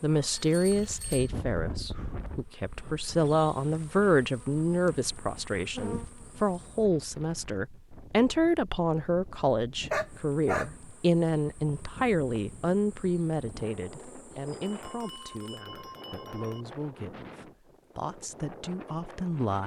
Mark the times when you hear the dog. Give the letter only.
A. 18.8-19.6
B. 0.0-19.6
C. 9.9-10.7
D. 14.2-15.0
C.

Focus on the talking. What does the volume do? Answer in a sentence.
The volume of the talking goes down.